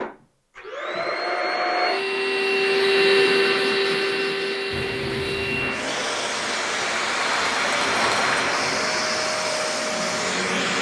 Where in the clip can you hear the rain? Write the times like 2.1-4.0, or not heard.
4.7-10.7.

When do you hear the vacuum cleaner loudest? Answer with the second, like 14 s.
3 s.